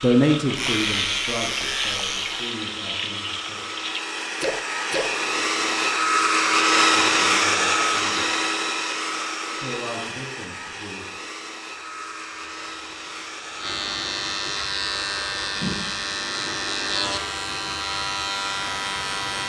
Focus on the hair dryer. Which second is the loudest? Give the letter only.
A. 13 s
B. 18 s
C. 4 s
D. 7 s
D.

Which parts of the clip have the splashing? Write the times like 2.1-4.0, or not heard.
0.0-5.2.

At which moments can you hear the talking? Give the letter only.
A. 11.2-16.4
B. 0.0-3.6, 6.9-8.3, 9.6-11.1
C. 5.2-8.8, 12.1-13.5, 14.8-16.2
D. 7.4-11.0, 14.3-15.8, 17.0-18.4
B.